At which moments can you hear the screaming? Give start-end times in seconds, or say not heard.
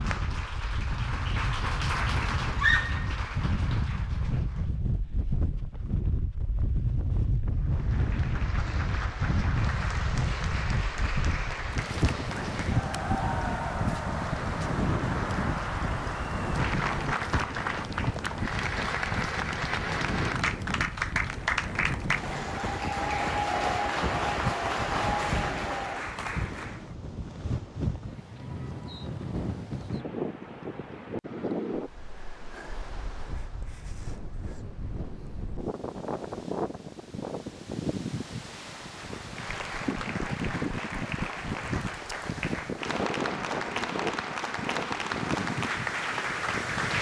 2.5-3.1.